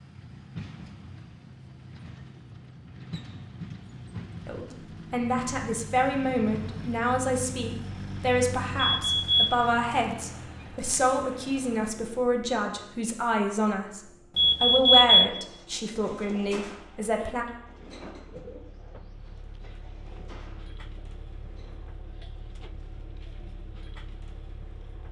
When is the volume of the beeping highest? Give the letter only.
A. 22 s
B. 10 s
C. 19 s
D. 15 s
D.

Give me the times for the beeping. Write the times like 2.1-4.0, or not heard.
8.8-9.5, 14.3-15.3.